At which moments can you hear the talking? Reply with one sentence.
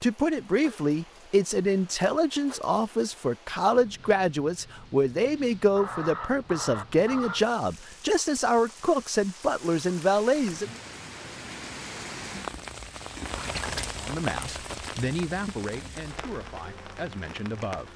The talking can be heard from 0.0 to 10.8 s and from 13.9 to 17.9 s.